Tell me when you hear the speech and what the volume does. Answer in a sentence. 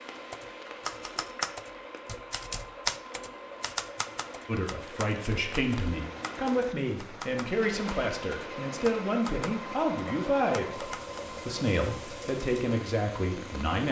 The speech can be heard from 4.5 to 13.8 s, at a steady volume.